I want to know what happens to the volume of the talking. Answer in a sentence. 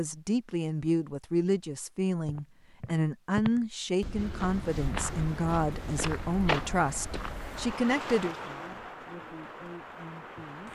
The loudness of the talking goes down.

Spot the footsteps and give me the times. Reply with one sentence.
The footsteps can be heard from 2.2 to 7.8 s.